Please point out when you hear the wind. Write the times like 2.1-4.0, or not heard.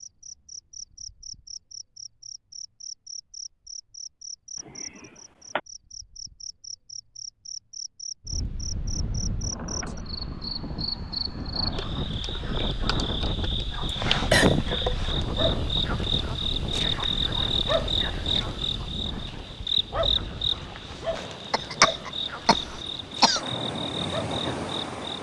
8.2-25.1.